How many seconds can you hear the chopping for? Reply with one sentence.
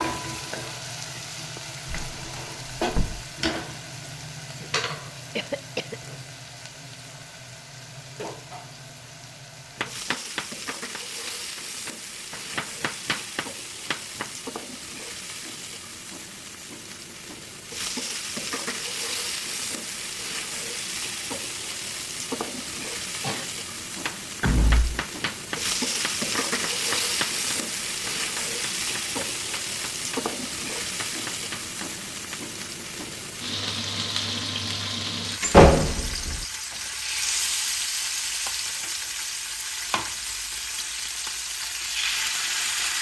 You can hear the chopping for 13 seconds altogether.